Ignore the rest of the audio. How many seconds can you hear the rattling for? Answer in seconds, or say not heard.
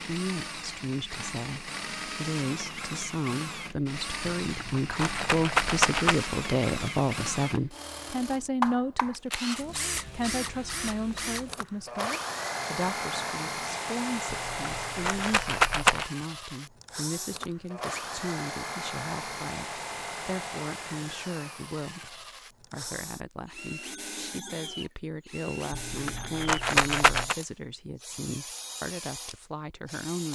5 s.